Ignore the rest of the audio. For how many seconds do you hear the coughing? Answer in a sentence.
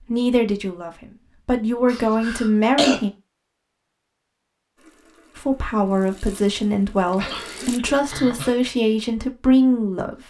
The coughing can be heard for 3 seconds in total.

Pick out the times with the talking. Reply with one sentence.
The talking can be heard from 0.0 to 3.1 s and from 5.3 to 10.2 s.